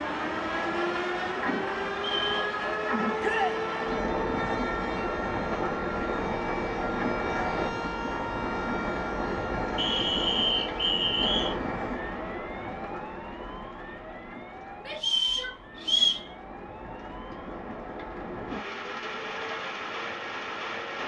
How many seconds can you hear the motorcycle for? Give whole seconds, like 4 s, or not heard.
not heard.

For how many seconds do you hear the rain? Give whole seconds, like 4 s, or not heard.
21 s.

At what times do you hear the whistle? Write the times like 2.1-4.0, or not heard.
1.9-2.5, 9.8-11.6, 14.9-16.2.